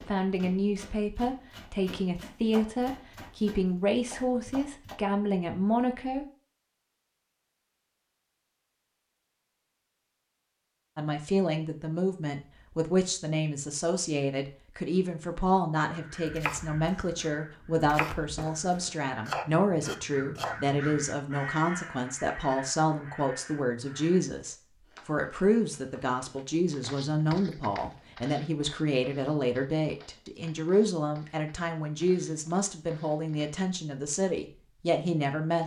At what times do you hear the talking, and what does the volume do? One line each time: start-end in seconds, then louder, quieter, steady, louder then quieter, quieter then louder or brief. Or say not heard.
0.1-6.2 steady
10.9-35.6 steady.